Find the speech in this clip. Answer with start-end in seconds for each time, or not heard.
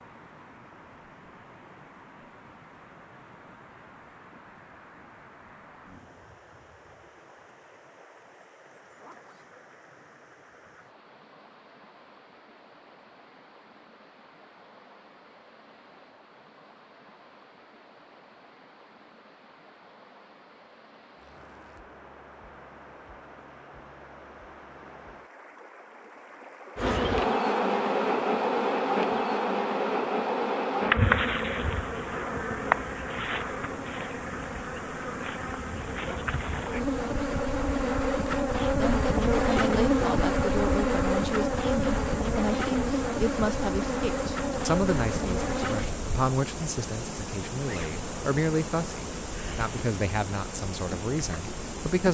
38.8-52.0.